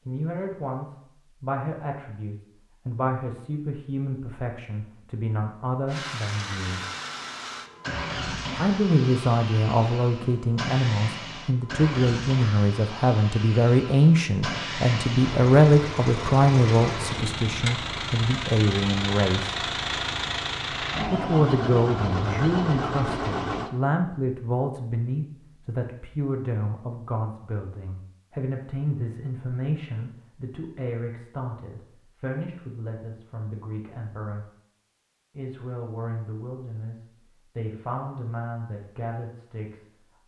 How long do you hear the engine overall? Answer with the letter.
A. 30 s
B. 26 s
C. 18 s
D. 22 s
C.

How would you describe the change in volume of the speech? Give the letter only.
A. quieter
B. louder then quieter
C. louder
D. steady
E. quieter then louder
B.